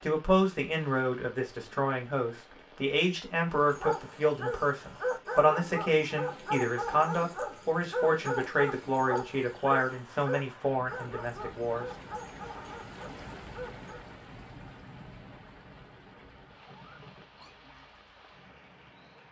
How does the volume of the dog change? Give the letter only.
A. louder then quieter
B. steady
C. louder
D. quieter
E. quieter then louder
D.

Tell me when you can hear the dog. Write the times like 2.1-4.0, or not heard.
3.5-14.1.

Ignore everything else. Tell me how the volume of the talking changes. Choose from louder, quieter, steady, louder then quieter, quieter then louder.
steady.